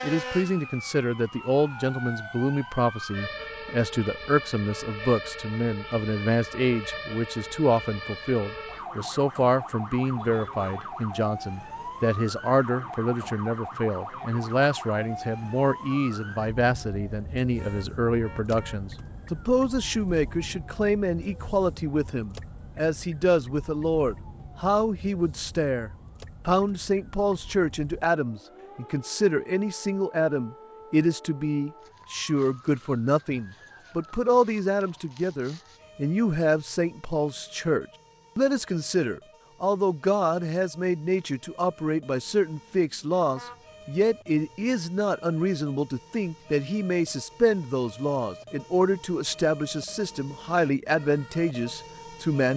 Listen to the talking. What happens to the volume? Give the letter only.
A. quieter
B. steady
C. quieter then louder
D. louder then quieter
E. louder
B.